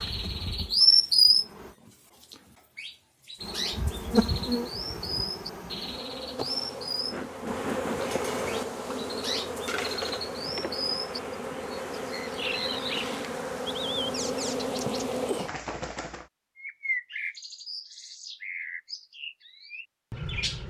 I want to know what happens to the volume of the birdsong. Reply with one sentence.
The volume of the birdsong goes down.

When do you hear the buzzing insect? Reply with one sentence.
The buzzing insect can be heard from 0.0 to 1.8 s and from 3.4 to 15.5 s.